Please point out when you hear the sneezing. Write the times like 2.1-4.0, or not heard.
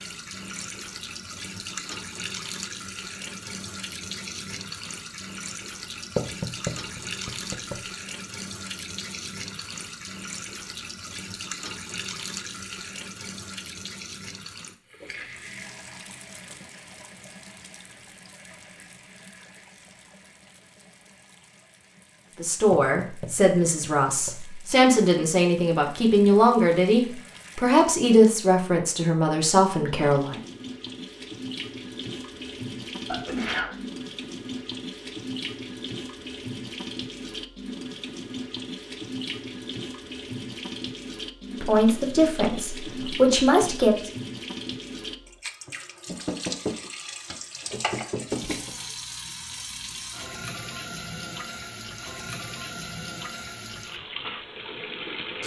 33.0-33.8.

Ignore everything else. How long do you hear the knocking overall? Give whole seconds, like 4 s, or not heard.
6 s.